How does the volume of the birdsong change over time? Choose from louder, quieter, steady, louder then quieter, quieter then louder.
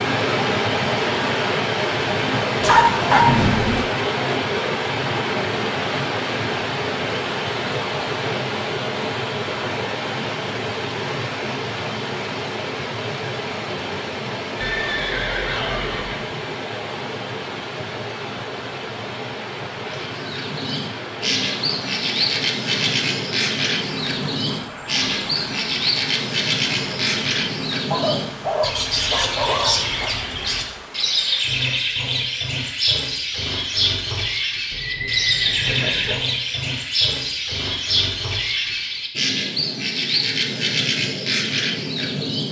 steady.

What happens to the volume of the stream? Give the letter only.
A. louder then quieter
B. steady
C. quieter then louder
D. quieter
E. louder
D.